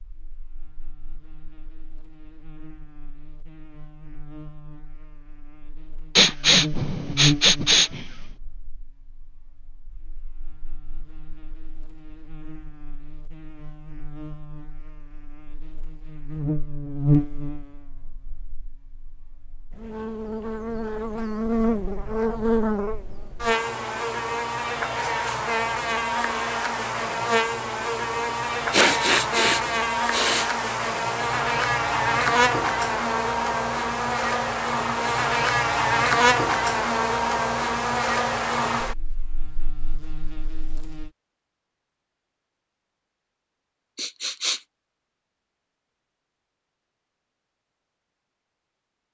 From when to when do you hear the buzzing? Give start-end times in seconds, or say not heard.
0.0-41.1.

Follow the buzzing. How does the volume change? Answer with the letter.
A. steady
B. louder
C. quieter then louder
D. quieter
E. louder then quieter
C.